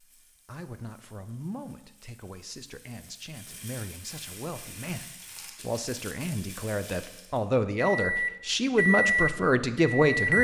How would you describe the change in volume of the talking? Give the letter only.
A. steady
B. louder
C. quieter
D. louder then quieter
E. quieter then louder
B.